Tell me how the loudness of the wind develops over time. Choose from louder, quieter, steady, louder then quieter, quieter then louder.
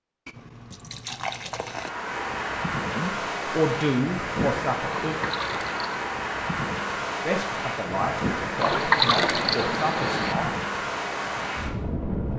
steady.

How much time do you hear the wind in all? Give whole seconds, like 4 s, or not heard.
11 s.